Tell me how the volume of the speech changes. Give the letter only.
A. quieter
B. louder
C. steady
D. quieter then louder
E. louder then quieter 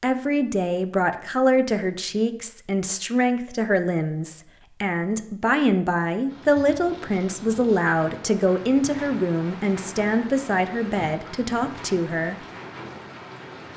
C.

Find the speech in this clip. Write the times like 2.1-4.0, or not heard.
0.0-12.4.